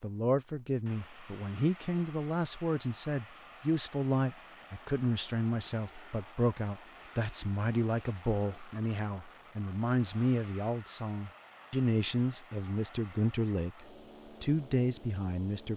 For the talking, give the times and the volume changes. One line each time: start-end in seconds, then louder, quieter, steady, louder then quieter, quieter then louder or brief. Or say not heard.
0.0-15.7 steady.